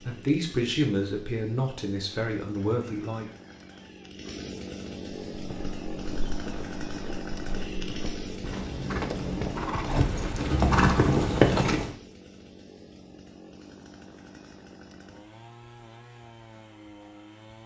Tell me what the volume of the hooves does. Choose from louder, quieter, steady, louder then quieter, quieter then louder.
louder.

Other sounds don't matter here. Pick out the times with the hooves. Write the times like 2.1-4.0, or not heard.
5.3-11.9.